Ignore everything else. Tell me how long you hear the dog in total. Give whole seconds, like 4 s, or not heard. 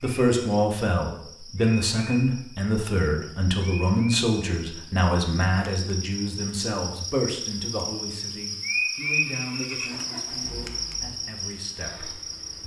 not heard.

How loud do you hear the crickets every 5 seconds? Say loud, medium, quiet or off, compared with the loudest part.
medium, loud, loud.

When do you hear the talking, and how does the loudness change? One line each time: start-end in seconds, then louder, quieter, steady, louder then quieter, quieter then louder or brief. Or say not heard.
0.0-12.6 quieter.